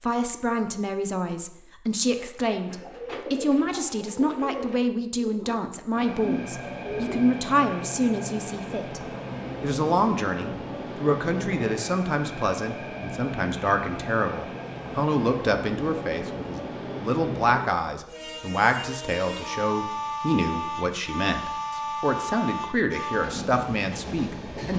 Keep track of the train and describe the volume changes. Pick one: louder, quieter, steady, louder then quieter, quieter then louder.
steady.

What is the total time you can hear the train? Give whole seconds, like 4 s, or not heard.
19 s.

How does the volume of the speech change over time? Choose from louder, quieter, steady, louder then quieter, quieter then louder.
steady.